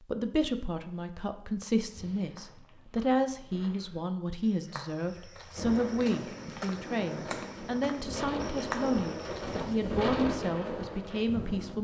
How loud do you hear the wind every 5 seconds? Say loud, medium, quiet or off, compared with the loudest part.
off, loud, loud.